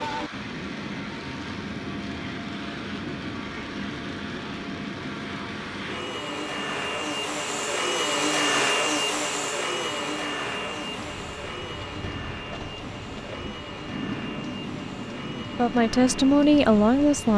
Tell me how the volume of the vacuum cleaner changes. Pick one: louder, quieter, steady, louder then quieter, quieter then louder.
louder then quieter.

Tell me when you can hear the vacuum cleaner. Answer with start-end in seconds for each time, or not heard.
0.0-17.3.